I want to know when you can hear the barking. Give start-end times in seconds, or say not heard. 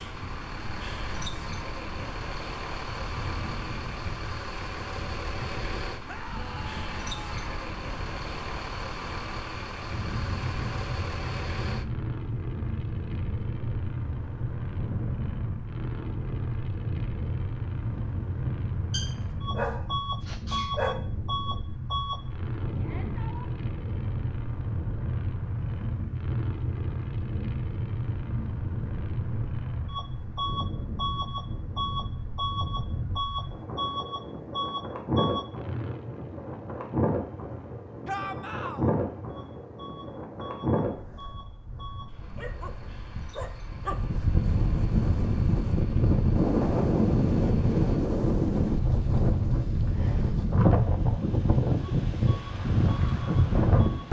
18.9-20.9, 42.4-44.0.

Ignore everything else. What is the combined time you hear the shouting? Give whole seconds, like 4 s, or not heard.
3 s.